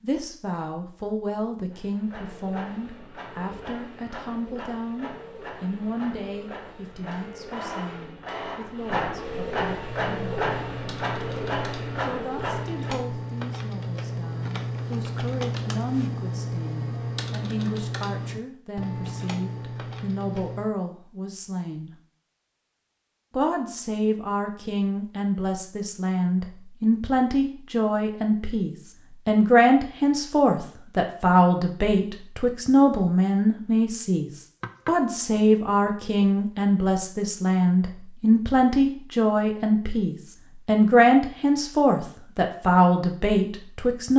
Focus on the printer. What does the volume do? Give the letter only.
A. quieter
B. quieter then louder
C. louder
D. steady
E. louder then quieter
C.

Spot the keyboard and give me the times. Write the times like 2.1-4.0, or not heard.
9.8-20.8.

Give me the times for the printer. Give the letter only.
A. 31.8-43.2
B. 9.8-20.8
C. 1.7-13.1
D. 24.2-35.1
C.